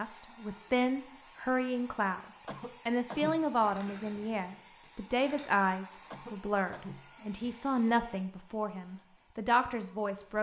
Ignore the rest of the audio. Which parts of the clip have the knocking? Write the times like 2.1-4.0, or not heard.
not heard.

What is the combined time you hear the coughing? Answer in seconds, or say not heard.
2 s.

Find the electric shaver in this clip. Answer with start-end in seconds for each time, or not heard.
not heard.